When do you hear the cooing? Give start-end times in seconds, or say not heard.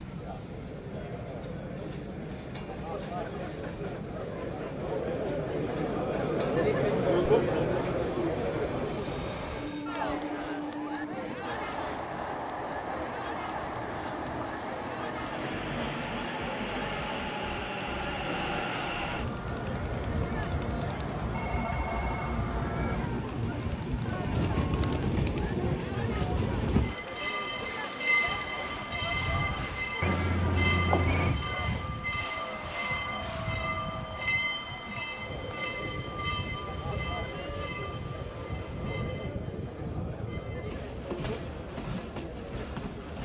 24.3-25.6.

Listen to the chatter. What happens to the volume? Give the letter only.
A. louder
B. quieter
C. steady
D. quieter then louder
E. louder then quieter
B.